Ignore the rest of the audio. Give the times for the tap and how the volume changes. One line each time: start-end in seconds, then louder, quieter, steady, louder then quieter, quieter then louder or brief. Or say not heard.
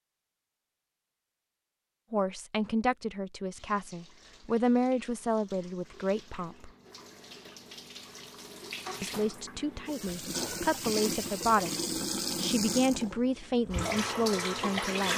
3.5-15.1 louder.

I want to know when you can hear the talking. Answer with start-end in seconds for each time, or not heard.
2.1-6.7, 9.0-15.1.